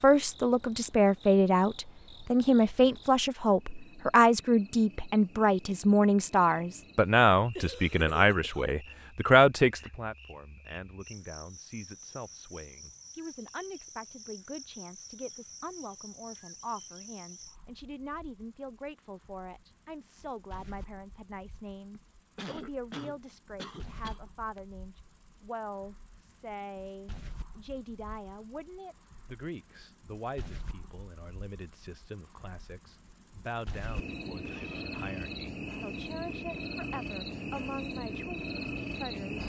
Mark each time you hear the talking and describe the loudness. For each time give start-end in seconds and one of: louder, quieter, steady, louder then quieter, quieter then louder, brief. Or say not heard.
0.0-39.4 quieter.